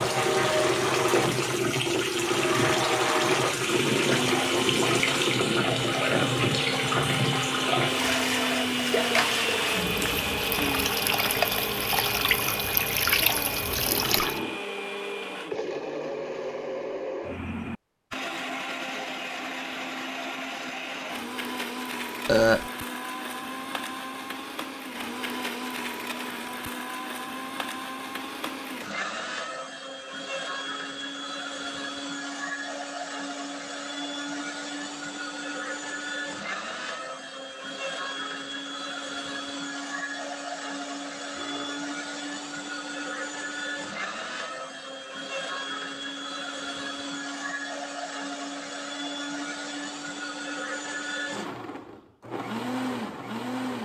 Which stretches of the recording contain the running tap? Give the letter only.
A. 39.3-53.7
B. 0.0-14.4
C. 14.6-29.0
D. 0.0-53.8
B.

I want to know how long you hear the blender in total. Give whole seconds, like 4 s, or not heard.
54 s.